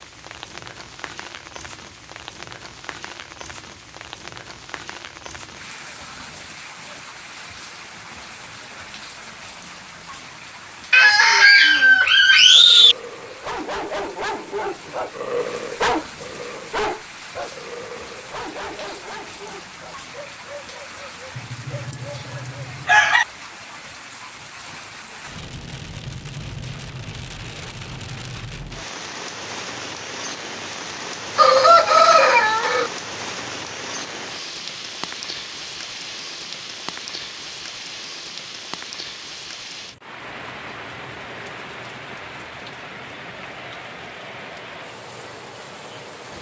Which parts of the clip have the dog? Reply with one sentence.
You can hear the dog from 12.6 to 22.6 s.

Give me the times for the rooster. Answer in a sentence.
The rooster can be heard from 10.9 to 12.9 s, from 21.4 to 23.2 s and from 31.4 to 32.9 s.